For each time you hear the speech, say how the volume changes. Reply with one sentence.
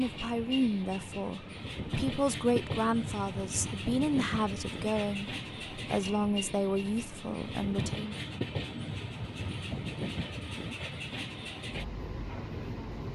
The speech can be heard from 0.0 to 8.2 s, at a steady volume.